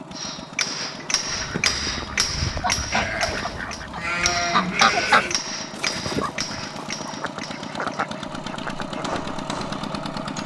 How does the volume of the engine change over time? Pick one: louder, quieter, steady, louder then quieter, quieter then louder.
louder.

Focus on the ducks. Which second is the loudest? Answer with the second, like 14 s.
5 s.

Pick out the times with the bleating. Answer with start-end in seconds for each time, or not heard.
2.9-5.3.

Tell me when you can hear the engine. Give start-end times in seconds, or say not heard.
0.0-10.4.